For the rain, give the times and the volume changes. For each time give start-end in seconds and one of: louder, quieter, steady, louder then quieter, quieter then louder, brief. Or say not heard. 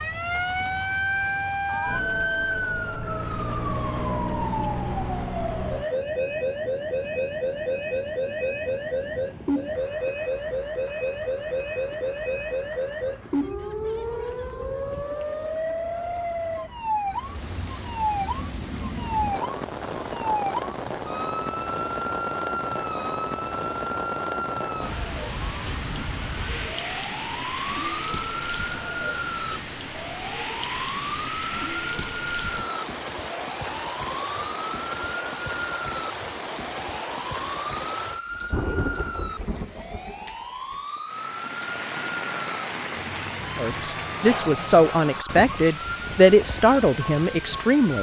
0.0-47.9 louder.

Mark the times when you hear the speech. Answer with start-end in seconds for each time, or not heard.
43.5-47.9.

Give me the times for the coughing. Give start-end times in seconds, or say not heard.
not heard.